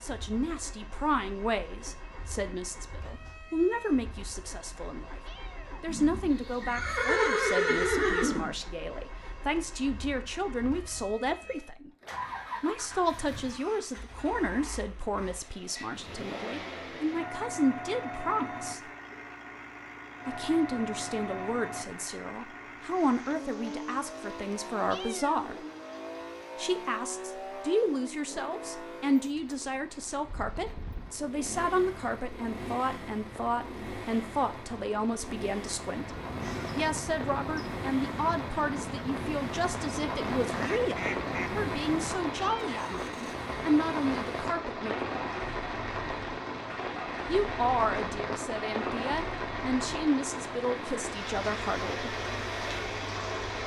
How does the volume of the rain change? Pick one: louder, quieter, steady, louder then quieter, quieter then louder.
louder.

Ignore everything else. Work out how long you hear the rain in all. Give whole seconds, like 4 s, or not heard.
31 s.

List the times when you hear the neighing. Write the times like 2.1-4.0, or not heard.
5.8-8.6.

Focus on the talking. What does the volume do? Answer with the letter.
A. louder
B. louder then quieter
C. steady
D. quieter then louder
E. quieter
C.